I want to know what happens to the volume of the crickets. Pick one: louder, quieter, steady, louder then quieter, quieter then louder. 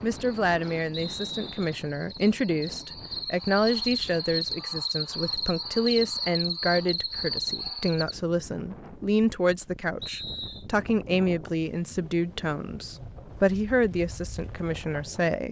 louder.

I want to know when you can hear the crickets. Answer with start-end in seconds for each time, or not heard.
0.1-8.2.